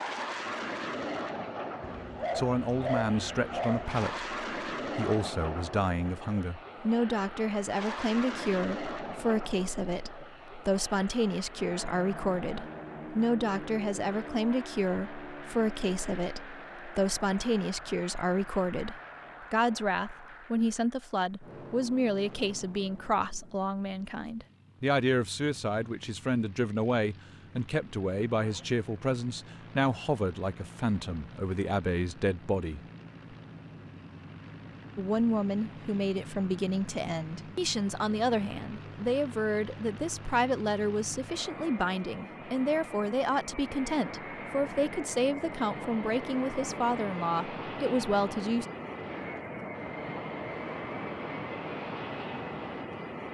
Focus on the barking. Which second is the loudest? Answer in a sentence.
The volume of the barking peaks at 3 seconds.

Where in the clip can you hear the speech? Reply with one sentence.
You can hear the speech from 2.4 to 32.8 s and from 35.0 to 48.6 s.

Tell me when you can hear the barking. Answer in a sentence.
The barking can be heard from 1.8 to 4.0 s.